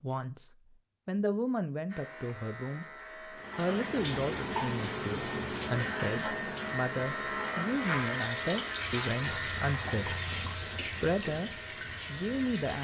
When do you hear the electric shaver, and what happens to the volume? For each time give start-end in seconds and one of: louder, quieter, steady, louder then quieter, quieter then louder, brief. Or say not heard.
1.9-12.7 louder then quieter.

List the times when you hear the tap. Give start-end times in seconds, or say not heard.
3.3-12.7.